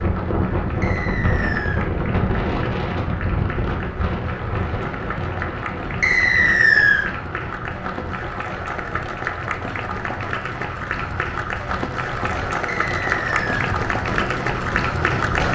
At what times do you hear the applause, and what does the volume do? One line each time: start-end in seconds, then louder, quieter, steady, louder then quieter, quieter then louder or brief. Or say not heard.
0.0-15.5 louder.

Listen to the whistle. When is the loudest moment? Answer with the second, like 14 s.
7 s.